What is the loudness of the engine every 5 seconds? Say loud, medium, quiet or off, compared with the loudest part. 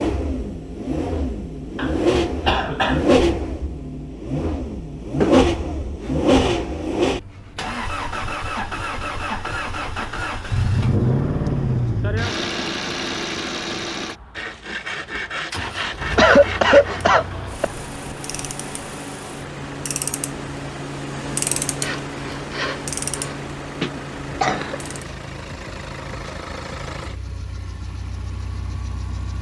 loud, loud, loud, quiet, quiet, quiet.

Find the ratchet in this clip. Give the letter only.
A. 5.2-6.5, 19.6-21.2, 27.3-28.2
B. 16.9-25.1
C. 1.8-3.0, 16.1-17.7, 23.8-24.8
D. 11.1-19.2
B.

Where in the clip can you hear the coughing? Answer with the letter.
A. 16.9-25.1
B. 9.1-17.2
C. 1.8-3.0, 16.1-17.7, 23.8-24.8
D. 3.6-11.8
C.